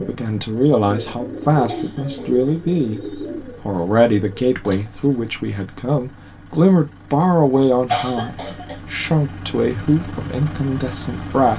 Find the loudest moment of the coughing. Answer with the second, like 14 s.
8 s.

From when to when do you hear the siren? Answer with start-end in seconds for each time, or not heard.
not heard.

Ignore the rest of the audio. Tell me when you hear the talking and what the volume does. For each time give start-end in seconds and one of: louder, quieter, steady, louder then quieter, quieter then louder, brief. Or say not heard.
0.0-11.5 steady.